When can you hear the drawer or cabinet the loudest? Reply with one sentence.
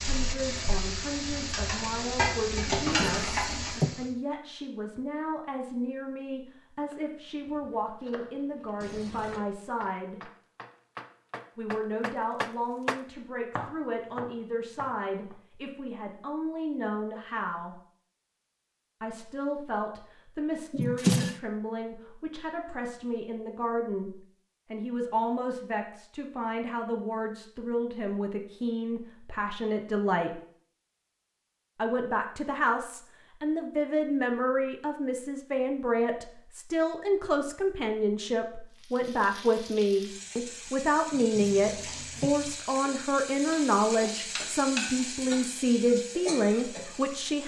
The loudest moment of the drawer or cabinet is at 21 seconds.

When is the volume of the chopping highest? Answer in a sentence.
The volume of the chopping peaks at 13 seconds.